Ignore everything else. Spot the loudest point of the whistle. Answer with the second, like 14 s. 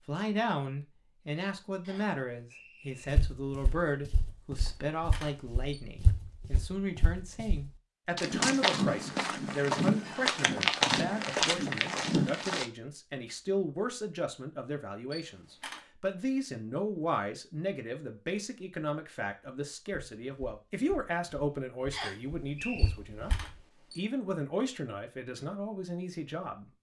22 s.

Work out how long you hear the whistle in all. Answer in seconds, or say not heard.
2 s.